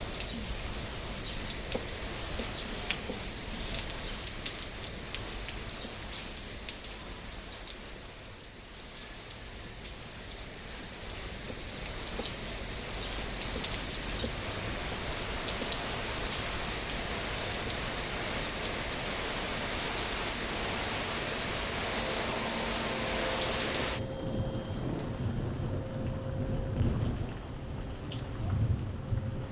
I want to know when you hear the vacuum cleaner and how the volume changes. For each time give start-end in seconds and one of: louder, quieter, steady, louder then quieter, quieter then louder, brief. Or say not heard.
21.9-29.4 quieter.